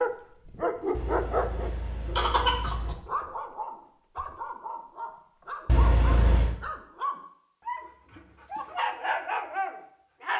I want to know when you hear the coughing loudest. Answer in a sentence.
The loudest moment of the coughing is at 2 seconds.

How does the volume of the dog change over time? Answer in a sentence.
The volume of the dog goes down, then up.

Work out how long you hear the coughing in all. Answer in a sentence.
You can hear the coughing for 3 seconds altogether.